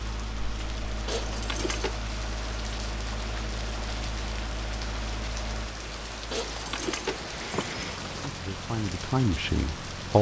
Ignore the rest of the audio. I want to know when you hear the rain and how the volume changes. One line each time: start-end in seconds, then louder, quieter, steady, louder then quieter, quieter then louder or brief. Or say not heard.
0.0-10.1 steady.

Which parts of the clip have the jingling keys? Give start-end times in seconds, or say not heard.
1.1-2.0, 6.3-8.3.